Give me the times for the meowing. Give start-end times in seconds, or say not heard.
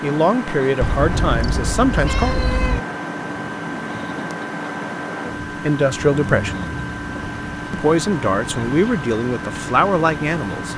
0.8-2.8.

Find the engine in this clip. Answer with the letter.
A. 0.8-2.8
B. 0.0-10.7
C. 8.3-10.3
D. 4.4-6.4
B.